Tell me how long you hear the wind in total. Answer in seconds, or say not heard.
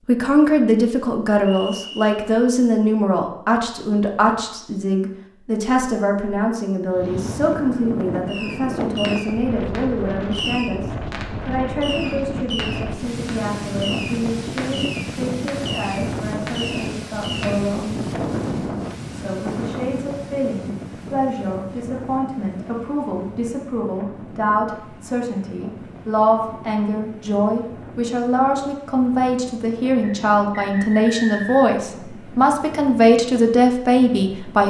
28 s.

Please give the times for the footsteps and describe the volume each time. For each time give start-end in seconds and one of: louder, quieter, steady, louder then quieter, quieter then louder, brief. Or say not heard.
not heard.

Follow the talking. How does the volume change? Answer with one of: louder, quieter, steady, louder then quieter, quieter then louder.
quieter then louder.